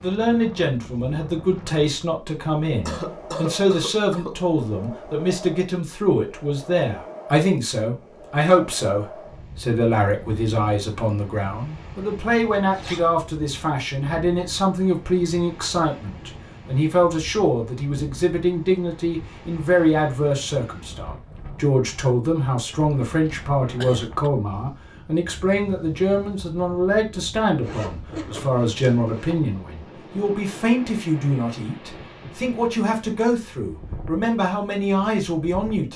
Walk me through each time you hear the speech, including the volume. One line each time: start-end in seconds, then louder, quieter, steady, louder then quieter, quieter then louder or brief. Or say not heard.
0.0-35.9 steady.